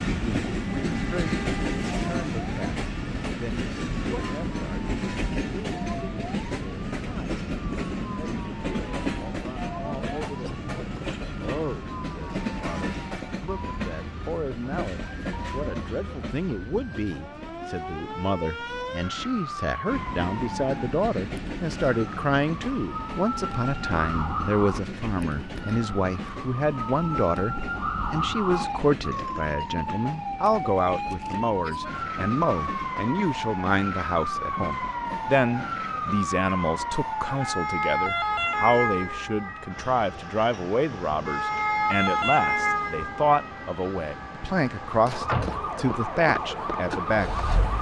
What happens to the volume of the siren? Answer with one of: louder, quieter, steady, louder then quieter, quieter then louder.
louder.